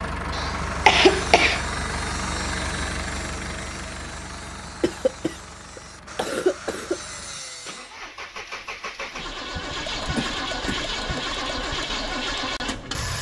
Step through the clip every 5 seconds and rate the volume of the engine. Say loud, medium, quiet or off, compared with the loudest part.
loud, medium, loud.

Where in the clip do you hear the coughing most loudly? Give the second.
1 s.